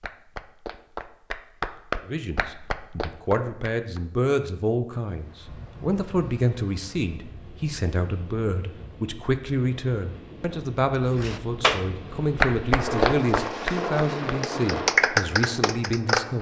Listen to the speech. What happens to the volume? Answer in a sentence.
The loudness of the speech stays about the same.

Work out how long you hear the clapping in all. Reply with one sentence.
The clapping can be heard for 9 seconds in total.